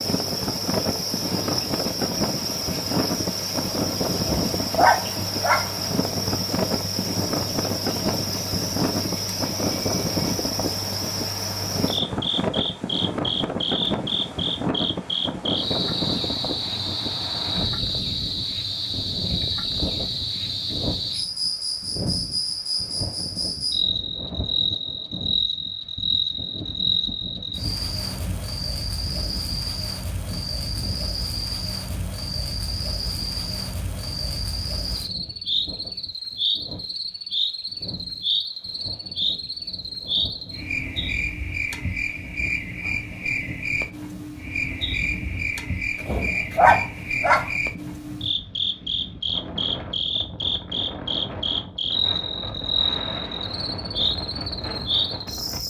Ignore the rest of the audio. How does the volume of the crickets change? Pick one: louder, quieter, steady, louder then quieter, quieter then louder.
steady.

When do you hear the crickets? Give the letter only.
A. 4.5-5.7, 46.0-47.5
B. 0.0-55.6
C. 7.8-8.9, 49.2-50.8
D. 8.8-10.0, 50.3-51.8
B.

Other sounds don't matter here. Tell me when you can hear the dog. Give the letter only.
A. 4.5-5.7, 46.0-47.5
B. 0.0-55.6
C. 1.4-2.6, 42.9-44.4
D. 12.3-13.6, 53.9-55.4
A.